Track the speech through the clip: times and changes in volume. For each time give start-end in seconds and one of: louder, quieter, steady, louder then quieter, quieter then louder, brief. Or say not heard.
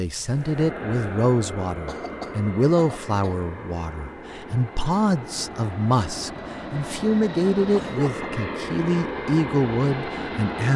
0.0-10.7 steady.